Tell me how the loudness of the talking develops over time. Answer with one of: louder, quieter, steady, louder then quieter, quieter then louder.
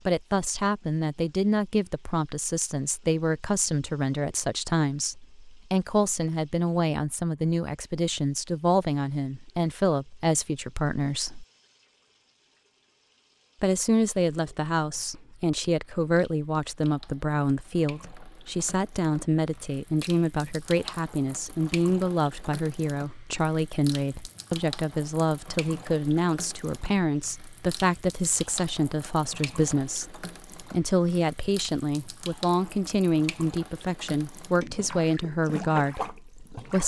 steady.